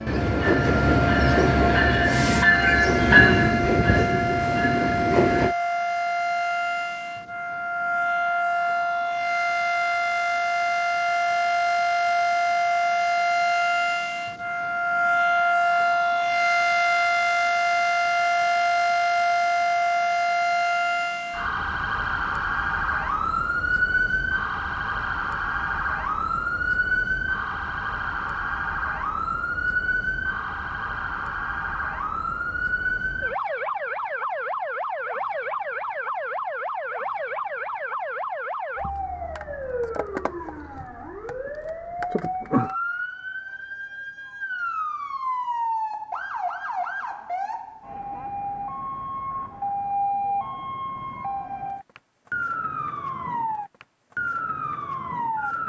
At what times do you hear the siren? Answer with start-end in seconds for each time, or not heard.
0.1-55.6.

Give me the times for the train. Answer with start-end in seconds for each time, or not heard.
0.0-5.5.